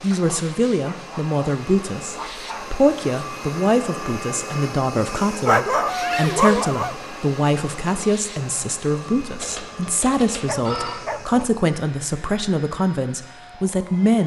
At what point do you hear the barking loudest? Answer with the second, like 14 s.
6 s.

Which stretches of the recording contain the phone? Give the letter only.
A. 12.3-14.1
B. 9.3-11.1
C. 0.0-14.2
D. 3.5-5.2
B.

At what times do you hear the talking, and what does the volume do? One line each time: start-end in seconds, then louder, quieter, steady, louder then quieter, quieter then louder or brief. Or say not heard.
0.0-14.2 steady.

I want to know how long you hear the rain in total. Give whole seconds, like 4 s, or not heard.
not heard.